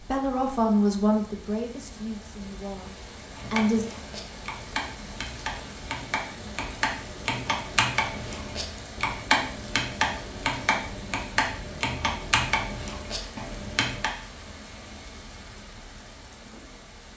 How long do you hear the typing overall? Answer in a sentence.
The typing can be heard for 11 seconds in total.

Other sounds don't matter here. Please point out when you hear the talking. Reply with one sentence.
You can hear the talking from 0.0 to 3.9 s.